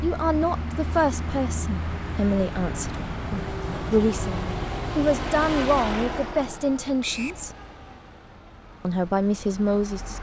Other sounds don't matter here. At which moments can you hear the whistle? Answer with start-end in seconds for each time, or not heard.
7.0-7.5.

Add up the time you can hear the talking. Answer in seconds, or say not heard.
9 s.